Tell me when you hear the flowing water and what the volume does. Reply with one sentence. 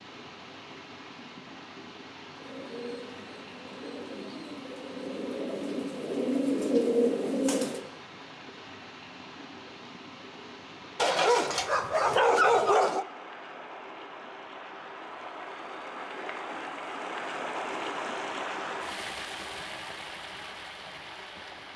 You can hear the flowing water from 0.0 to 21.7 s, getting louder.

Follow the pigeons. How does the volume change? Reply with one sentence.
The volume of the pigeons goes up.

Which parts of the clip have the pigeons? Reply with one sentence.
You can hear the pigeons from 2.3 to 7.8 s.